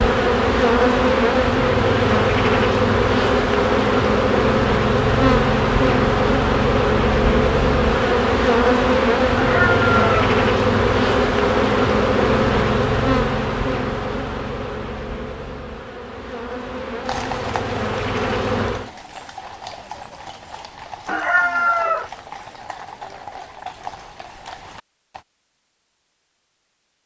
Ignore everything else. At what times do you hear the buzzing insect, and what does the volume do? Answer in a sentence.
The buzzing insect can be heard from 0.0 to 18.9 s, getting quieter.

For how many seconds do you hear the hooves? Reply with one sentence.
You can hear the hooves for 8 seconds altogether.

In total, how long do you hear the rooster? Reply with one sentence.
You can hear the rooster for 2 seconds altogether.